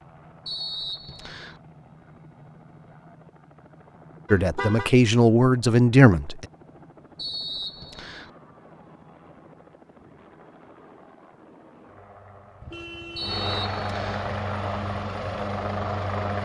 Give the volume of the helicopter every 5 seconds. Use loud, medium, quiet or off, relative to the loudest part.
quiet, quiet, medium, loud.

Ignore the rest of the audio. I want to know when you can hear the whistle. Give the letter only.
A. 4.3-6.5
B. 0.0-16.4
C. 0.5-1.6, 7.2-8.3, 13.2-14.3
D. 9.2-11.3
C.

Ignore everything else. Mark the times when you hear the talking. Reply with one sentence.
The talking can be heard from 4.3 to 6.5 s.